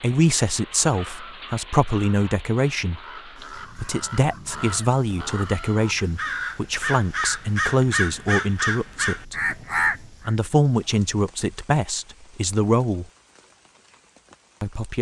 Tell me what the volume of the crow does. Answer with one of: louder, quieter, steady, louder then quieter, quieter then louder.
louder.